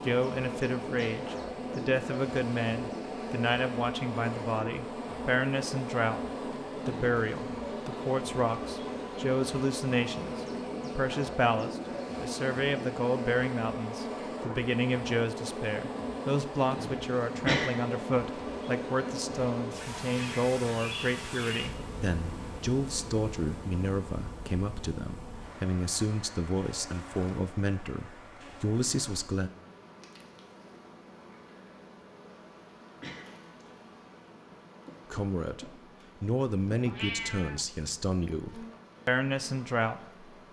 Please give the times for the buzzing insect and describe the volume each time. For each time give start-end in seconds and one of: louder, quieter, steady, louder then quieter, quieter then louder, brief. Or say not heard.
0.0-40.4 quieter.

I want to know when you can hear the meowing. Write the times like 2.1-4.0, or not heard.
36.9-37.6.